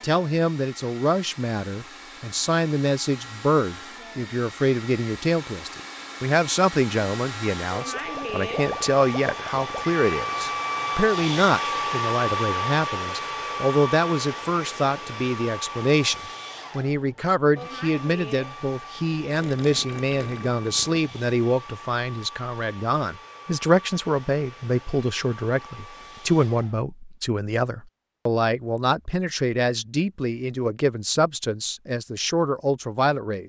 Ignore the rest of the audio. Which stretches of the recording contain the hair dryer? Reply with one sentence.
The hair dryer can be heard from 0.0 to 26.8 s.